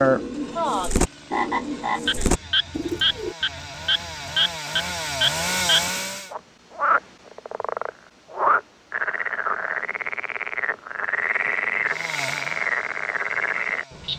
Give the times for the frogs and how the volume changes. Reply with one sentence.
You can hear the frogs from 0.0 to 14.1 s, at a steady volume.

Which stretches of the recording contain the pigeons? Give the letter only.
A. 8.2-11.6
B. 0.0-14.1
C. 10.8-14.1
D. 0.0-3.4
D.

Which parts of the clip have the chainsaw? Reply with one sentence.
You can hear the chainsaw from 0.0 to 6.3 s and from 11.1 to 14.1 s.